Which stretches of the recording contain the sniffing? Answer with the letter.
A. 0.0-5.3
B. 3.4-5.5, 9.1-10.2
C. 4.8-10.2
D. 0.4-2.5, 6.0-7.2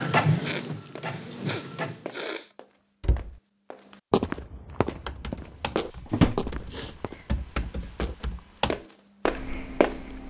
D.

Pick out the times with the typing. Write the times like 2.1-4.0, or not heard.
4.8-10.2.